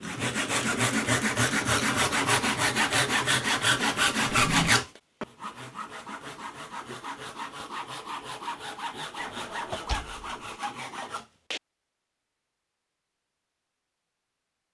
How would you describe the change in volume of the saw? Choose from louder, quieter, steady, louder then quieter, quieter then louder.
quieter.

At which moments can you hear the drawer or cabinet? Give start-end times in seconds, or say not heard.
4.3-4.7, 9.2-10.6.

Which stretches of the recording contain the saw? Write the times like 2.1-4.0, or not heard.
0.0-11.6.